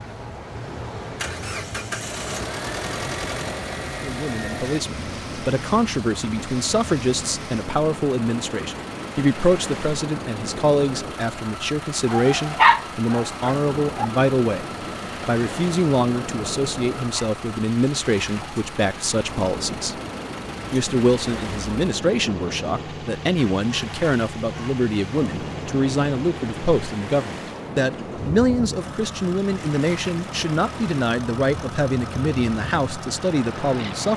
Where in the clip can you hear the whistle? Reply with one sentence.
You can't hear the whistle here.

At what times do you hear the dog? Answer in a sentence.
The dog can be heard from 12.1 to 14.1 s.